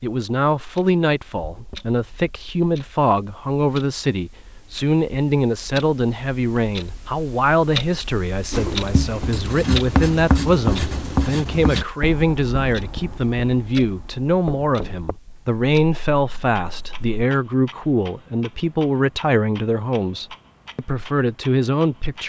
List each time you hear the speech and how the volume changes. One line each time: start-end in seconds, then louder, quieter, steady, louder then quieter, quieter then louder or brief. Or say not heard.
0.0-22.2 steady.